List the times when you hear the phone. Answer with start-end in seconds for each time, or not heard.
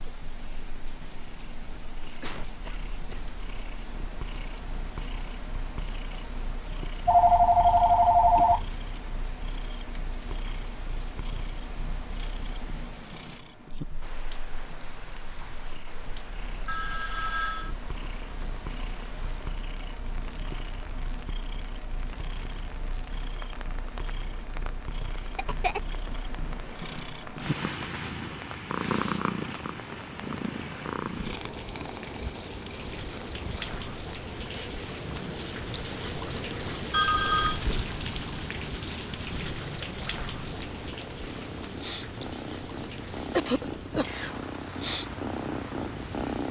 7.0-8.7, 16.6-17.8, 36.9-37.6.